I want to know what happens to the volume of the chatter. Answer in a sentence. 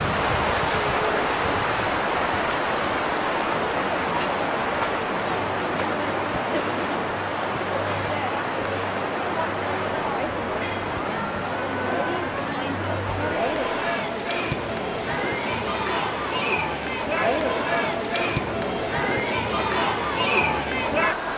The loudness of the chatter goes up.